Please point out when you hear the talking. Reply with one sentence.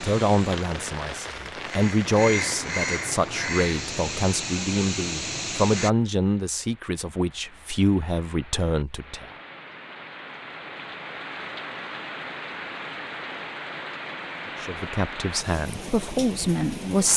You can hear the talking from 0.0 to 9.2 s and from 14.6 to 17.1 s.